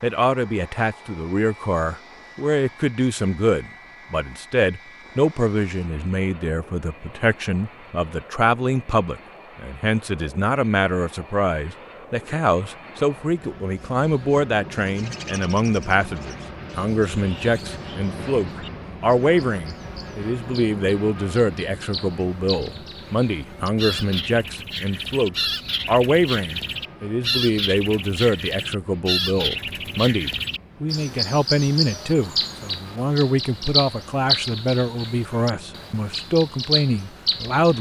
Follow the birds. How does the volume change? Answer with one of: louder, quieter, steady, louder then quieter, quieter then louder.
louder.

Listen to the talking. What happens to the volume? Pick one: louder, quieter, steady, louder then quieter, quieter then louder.
steady.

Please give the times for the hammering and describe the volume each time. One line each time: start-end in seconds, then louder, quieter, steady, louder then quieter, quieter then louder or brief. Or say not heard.
not heard.